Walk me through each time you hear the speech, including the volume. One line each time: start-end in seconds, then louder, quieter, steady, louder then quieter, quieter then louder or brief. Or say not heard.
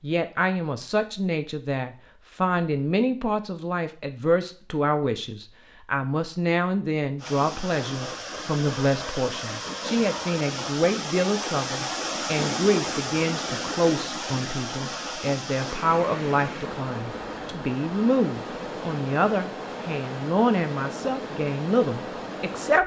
0.0-22.8 steady.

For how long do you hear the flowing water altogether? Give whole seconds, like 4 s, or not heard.
16 s.